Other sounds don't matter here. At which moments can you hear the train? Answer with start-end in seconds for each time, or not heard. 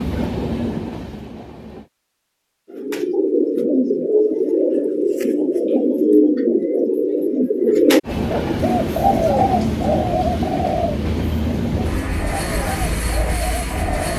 0.0-1.9, 8.1-14.1.